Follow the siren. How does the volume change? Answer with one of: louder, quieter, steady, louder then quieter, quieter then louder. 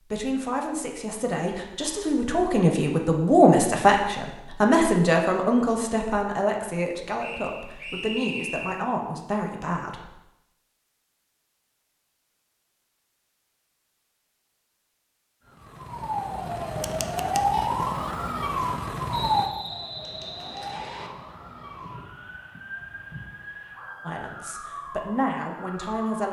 quieter.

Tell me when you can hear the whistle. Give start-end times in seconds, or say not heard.
7.2-8.8, 19.1-21.1.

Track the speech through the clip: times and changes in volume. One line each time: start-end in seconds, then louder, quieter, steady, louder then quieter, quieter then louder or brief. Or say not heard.
0.0-10.1 louder then quieter
24.1-26.2 brief.